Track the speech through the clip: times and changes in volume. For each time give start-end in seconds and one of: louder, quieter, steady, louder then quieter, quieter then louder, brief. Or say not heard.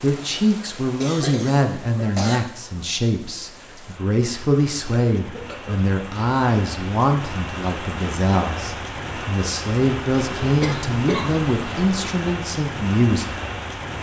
0.0-13.3 steady.